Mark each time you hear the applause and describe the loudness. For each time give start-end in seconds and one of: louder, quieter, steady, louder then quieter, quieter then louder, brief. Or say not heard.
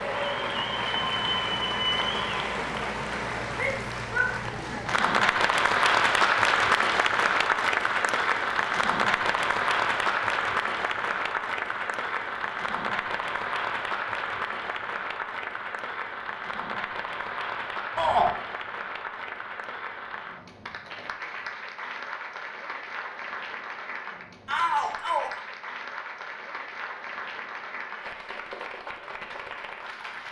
0.0-30.2 quieter.